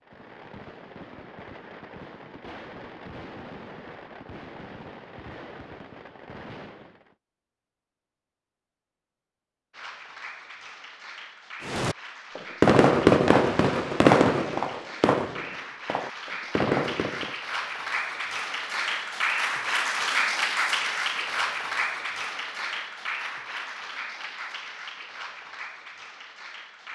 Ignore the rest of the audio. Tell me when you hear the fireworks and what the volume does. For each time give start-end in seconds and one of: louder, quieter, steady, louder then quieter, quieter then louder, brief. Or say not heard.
0.0-7.2 steady
11.6-17.4 quieter.